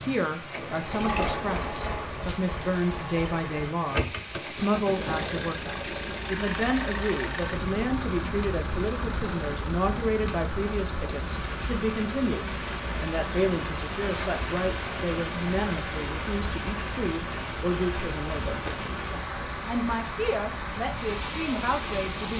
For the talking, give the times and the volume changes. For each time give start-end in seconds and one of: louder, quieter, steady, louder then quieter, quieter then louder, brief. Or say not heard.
0.0-22.3 steady.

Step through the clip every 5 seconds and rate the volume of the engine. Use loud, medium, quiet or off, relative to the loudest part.
loud, loud, medium, medium, medium.